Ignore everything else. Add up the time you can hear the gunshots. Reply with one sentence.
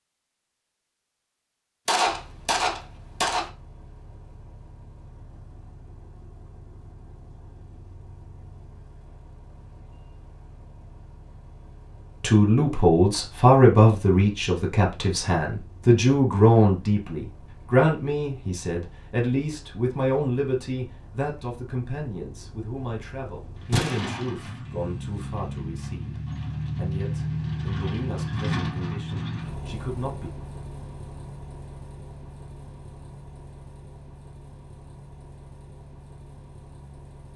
You can hear the gunshots for 2 seconds altogether.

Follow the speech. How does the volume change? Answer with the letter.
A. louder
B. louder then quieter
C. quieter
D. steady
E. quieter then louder
C.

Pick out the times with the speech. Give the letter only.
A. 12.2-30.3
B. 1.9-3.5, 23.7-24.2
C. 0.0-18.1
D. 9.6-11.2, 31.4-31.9
A.